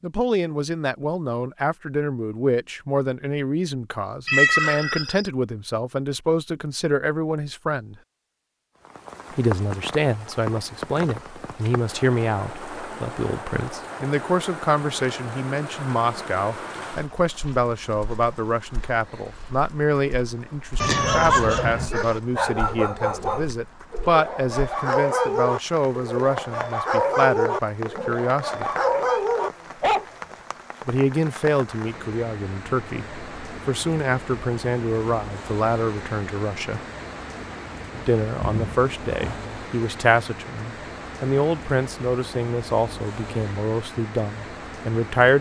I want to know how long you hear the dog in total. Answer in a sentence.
You can hear the dog for 9 seconds altogether.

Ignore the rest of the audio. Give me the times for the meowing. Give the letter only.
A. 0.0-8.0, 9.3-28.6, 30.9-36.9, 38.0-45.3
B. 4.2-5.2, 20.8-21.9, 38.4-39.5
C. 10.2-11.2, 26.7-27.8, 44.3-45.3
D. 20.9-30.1
B.